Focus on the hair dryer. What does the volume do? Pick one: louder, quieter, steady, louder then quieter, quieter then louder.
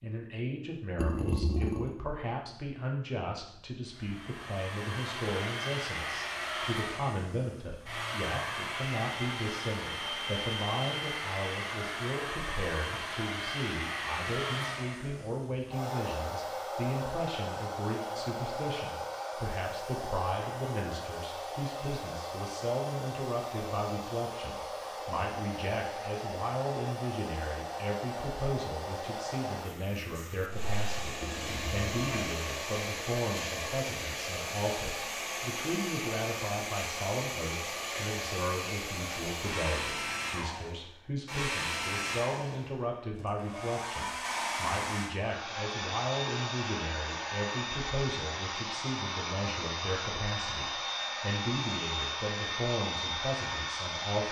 steady.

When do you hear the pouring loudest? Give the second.
1 s.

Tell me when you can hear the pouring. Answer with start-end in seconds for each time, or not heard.
0.9-2.0, 31.2-32.4.